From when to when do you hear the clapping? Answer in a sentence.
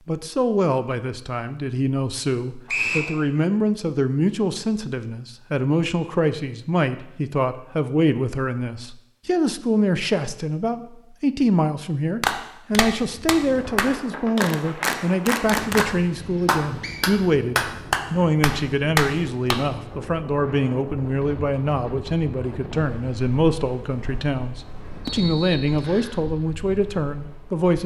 You can hear the clapping from 12.2 to 19.6 s.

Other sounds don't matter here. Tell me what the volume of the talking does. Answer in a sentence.
The volume of the talking stays about the same.